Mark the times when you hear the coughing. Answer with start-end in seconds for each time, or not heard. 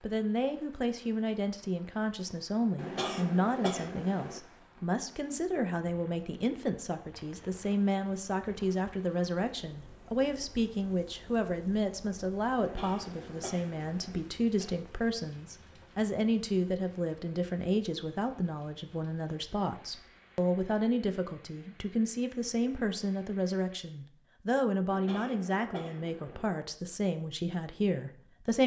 2.8-4.4, 12.6-14.8, 24.9-26.5.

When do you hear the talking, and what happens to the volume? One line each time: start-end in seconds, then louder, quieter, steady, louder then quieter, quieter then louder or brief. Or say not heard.
0.0-28.6 steady.